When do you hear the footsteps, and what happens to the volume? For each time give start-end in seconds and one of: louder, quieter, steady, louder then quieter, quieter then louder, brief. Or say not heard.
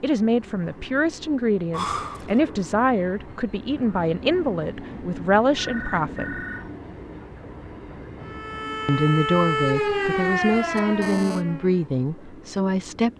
not heard.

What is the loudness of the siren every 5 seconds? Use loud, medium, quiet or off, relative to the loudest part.
off, loud, loud.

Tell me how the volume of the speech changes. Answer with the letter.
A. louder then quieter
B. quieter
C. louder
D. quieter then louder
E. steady
E.